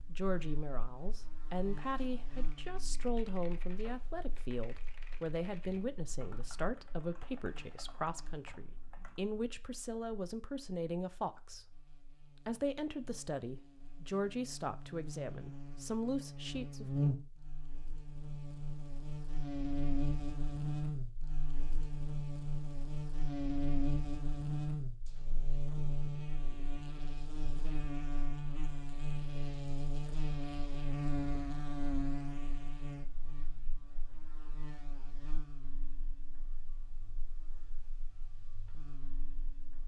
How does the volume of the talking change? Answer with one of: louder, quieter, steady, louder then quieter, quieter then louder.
steady.